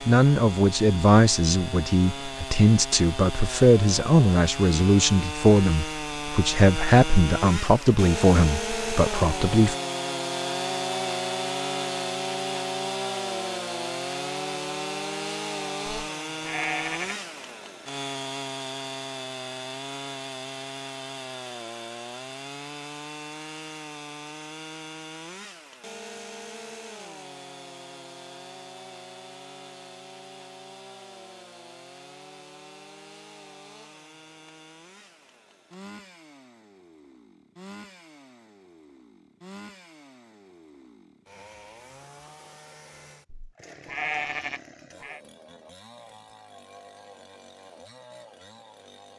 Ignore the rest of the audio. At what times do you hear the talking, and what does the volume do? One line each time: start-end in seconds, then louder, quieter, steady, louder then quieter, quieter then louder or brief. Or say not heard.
0.1-9.8 steady.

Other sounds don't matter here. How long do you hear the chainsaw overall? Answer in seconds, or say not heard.
49 s.